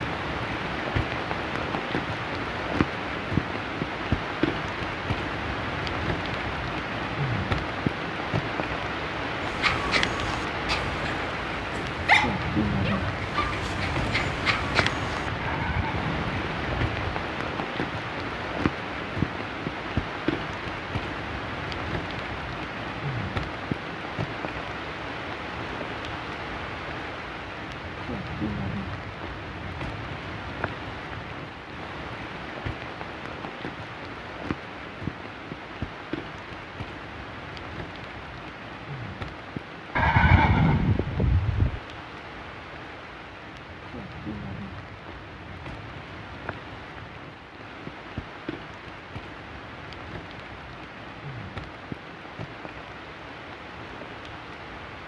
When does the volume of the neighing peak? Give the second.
40 s.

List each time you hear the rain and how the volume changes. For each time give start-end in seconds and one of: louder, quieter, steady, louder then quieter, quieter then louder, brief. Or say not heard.
0.0-55.0 quieter.